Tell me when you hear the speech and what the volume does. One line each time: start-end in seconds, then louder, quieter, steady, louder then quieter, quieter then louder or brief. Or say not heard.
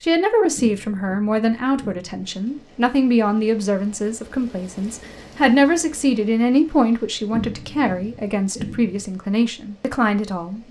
0.0-10.6 steady.